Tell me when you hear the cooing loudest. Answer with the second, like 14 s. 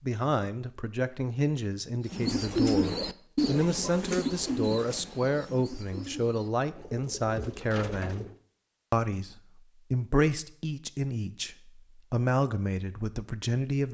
3 s.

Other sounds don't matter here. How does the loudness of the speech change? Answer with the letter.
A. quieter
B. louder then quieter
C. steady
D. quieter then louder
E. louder
C.